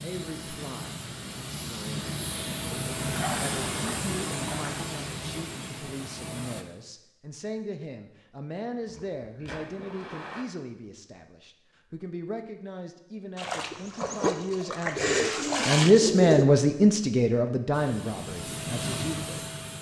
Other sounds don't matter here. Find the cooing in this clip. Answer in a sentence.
The cooing can be heard from 14.9 to 16.5 s.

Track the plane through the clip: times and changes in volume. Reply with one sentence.
You can hear the plane from 0.0 to 6.7 s, getting louder then quieter; and briefly from 17.7 to 19.7 s.